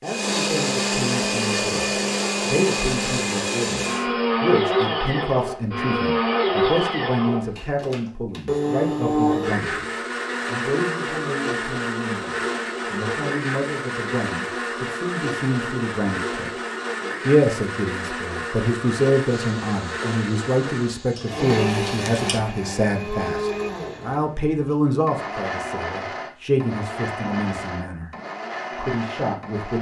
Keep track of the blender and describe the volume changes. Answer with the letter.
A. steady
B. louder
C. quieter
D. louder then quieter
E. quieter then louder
C.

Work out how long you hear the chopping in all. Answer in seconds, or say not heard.
not heard.